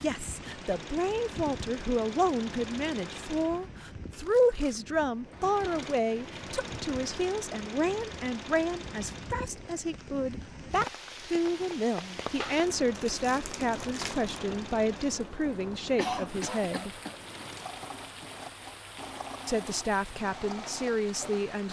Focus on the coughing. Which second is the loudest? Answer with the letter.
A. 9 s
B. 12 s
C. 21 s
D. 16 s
D.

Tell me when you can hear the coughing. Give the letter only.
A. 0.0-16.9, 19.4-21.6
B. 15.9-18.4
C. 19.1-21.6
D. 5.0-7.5
B.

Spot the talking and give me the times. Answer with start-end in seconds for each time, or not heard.
0.0-16.9, 19.4-21.6.